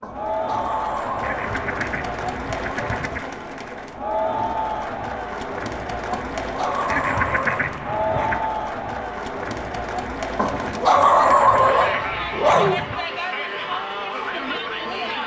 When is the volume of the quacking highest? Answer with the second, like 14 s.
7 s.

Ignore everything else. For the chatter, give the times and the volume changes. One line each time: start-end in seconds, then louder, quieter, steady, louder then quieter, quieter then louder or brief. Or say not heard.
0.0-15.2 steady.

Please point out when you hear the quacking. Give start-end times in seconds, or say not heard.
1.2-3.2, 6.8-8.5, 11.2-13.0.